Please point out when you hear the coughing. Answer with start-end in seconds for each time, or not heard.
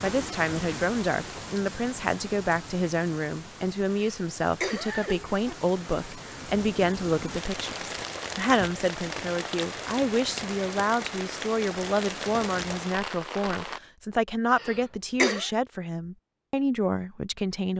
3.9-5.2, 14.5-15.5.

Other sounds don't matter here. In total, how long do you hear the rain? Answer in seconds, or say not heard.
14 s.